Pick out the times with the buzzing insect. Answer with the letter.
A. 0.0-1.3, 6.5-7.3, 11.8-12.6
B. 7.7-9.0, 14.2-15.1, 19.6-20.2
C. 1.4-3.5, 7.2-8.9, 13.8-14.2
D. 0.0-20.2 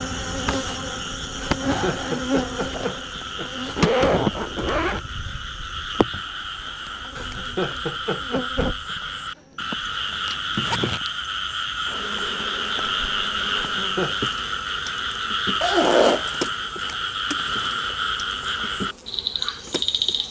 D.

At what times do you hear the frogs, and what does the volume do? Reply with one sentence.
The frogs can be heard from 0.0 to 20.2 s, getting louder.